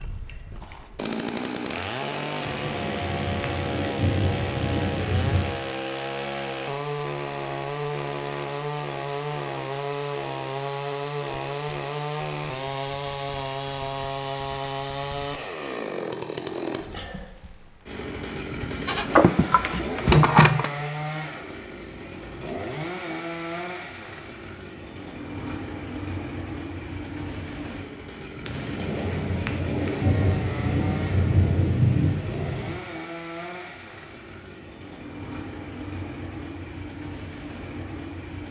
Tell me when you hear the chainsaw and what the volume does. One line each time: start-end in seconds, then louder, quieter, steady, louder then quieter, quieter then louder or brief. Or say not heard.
0.0-38.4 quieter.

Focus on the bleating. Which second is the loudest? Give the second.
20 s.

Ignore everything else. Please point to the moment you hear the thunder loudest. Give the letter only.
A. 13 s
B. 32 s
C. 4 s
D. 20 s
B.